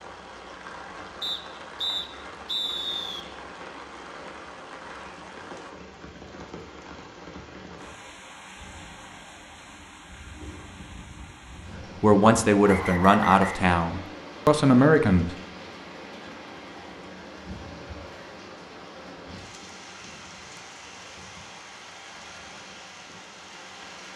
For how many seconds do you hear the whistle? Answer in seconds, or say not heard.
3 s.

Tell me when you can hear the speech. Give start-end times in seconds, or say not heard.
12.0-15.3.